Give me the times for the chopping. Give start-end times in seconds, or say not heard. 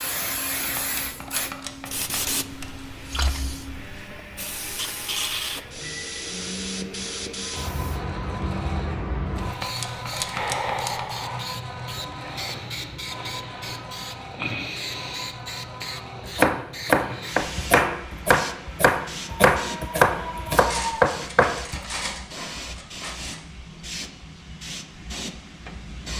16.2-21.8.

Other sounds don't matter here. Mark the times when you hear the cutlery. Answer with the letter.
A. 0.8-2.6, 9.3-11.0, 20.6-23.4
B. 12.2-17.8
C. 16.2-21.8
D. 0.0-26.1
A.